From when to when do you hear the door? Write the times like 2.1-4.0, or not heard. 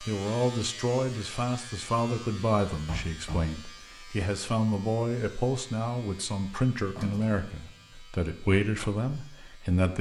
2.9-3.5, 7.0-7.8.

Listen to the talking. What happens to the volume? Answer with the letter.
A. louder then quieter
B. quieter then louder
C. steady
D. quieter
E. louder
C.